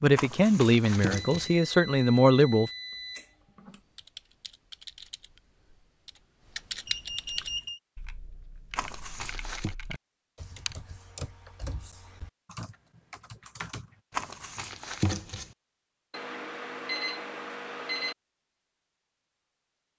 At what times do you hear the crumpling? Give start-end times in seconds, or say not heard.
0.1-1.6, 8.8-9.8, 14.1-15.5.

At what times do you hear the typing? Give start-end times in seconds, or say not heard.
3.6-13.9.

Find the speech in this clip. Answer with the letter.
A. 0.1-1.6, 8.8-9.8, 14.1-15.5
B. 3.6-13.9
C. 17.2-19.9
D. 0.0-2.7
D.